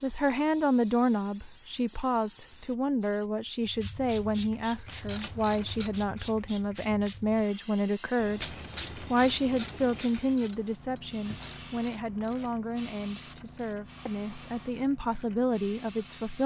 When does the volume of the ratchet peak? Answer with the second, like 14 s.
9 s.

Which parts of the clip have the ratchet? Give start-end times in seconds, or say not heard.
4.8-6.4, 8.4-16.4.